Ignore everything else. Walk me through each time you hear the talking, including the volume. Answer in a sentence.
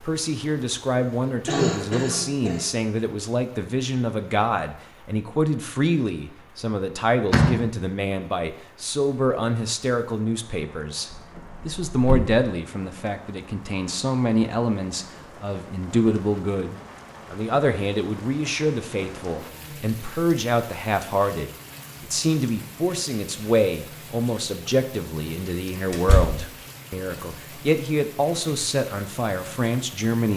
The talking can be heard from 0.0 to 30.3 s, at a steady volume.